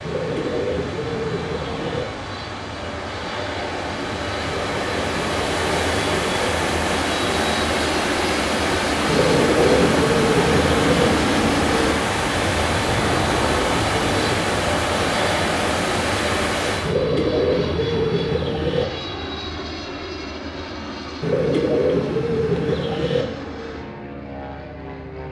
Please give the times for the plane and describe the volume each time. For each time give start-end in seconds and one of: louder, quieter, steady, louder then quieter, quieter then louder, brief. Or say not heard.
0.0-25.2 louder then quieter.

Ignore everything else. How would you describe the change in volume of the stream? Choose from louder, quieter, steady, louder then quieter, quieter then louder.
louder.